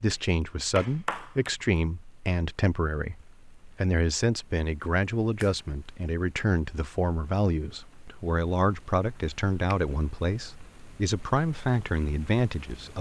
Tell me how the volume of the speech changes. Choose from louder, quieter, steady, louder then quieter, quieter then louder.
steady.